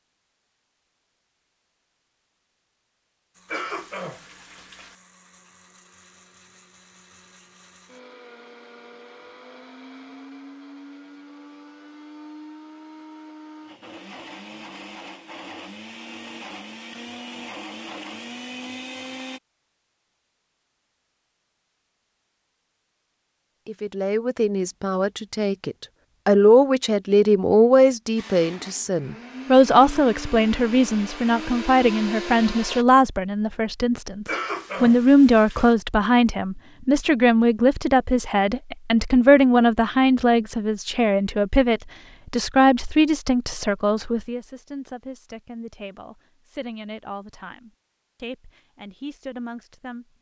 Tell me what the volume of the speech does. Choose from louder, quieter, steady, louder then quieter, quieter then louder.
quieter.